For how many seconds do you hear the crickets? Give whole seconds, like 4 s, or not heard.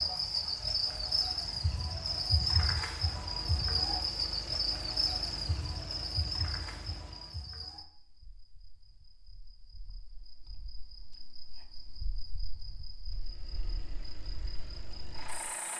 16 s.